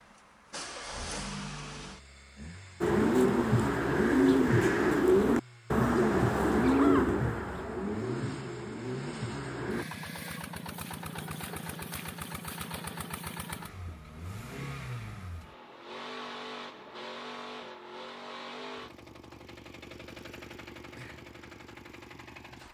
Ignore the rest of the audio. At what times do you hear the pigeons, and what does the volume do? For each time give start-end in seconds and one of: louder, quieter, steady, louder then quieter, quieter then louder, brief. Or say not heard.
2.8-9.8 quieter.